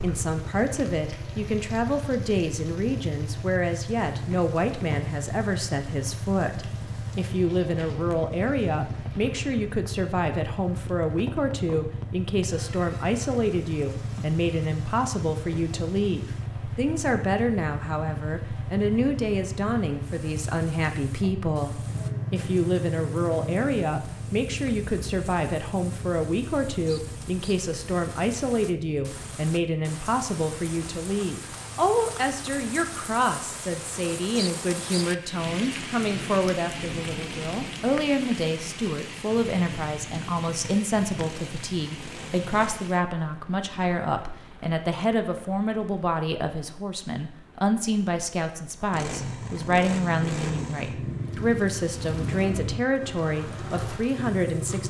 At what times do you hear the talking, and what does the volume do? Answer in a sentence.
You can hear the talking from 0.0 to 54.8 s, at a steady volume.